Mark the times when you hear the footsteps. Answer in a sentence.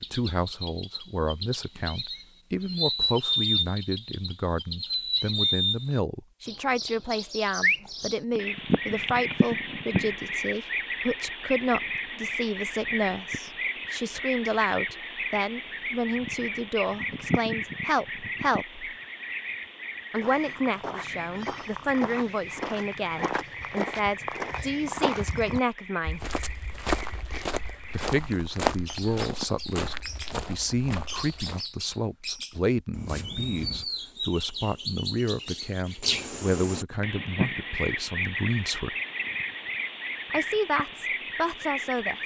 The footsteps can be heard from 20.1 to 31.6 s.